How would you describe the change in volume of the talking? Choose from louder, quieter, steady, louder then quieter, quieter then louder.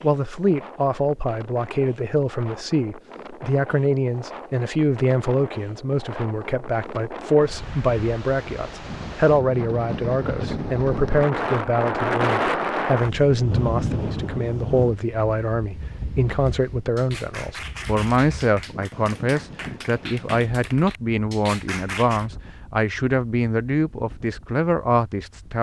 steady.